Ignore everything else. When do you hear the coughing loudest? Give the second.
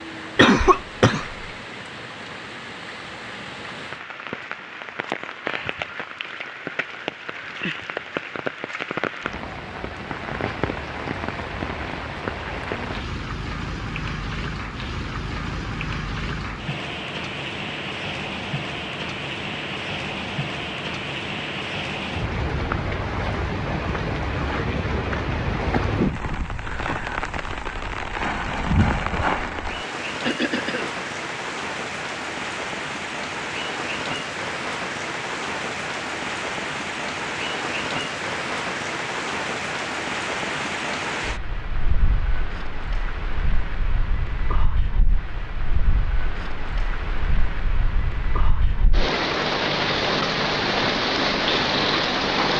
1 s.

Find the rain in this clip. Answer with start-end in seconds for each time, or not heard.
0.0-52.5.